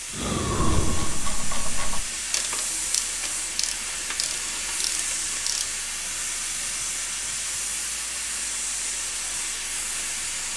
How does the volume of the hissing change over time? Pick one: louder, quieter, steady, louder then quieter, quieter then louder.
steady.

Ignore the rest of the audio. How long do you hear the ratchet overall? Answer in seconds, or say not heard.
5 s.